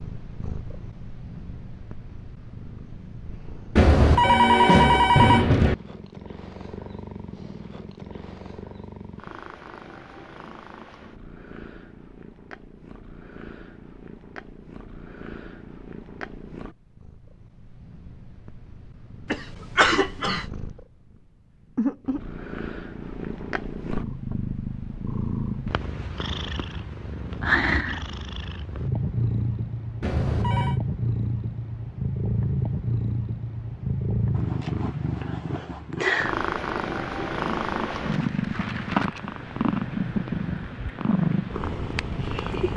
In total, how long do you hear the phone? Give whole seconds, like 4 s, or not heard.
3 s.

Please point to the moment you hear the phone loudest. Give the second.
5 s.